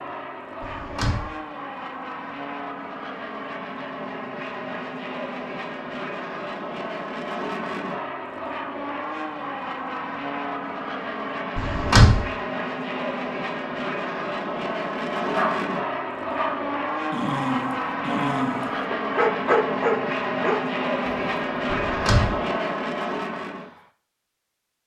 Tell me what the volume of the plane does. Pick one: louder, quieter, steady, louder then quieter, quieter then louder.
louder.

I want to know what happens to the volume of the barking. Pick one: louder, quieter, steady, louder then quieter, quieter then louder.
louder.